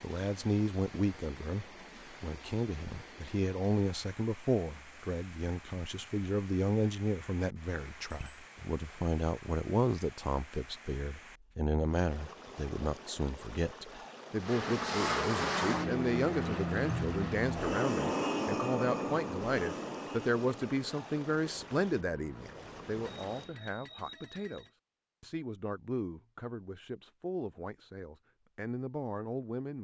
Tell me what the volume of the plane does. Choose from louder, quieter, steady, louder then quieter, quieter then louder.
quieter.